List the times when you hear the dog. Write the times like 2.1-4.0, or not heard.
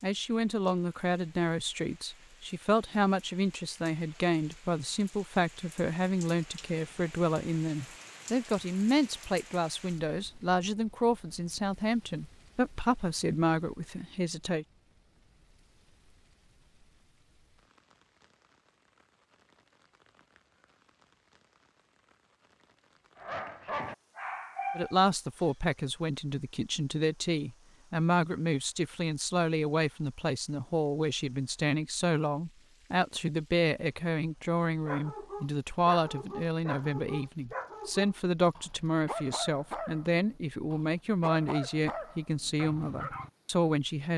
23.1-25.5, 34.9-43.3.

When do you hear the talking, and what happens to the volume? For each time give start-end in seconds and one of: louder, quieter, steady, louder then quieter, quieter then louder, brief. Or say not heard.
0.0-14.7 steady
24.8-44.1 steady.